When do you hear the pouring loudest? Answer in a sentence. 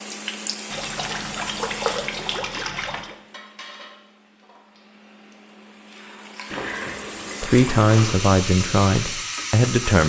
The volume of the pouring peaks at 2 seconds.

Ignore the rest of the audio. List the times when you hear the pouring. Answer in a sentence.
The pouring can be heard from 0.7 to 3.1 s and from 6.5 to 8.3 s.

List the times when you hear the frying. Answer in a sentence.
The frying can be heard from 0.0 to 10.0 s.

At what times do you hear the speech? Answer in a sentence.
You can hear the speech from 7.4 to 10.0 s.